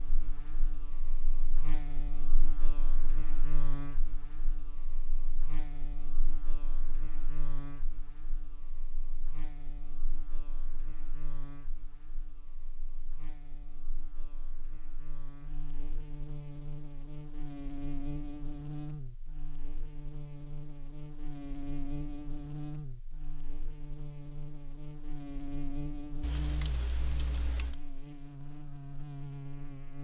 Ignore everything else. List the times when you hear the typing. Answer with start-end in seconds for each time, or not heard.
26.2-27.8.